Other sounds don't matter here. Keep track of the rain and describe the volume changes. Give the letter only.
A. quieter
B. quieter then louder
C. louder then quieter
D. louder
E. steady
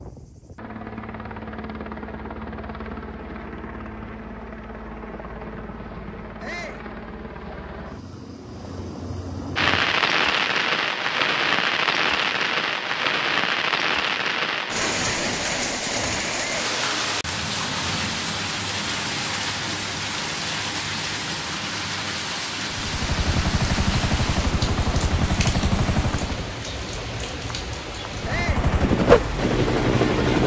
A.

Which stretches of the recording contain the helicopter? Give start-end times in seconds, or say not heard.
0.0-10.2, 22.6-26.6, 28.1-30.4.